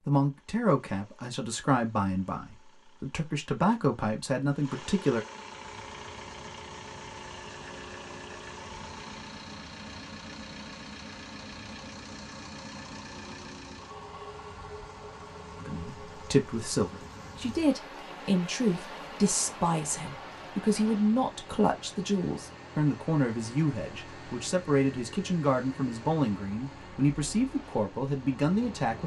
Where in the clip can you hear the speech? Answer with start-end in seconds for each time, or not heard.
0.1-5.2, 15.6-29.0.